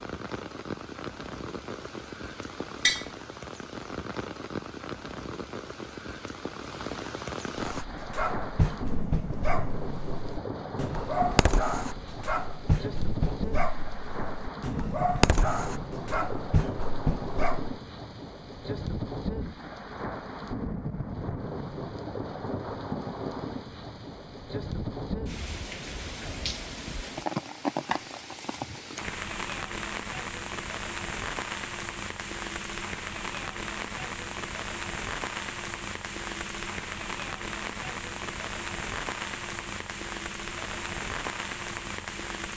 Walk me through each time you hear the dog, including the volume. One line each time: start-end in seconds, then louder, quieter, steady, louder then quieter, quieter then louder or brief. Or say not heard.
7.5-17.8 steady.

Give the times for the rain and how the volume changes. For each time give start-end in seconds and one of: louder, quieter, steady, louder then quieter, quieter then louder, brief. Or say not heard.
0.0-42.5 steady.